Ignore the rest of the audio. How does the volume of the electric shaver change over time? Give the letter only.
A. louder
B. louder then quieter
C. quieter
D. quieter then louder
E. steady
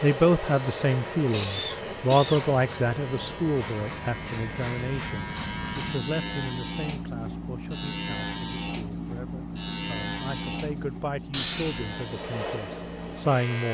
B.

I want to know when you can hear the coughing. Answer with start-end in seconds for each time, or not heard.
0.6-2.5, 11.3-11.8.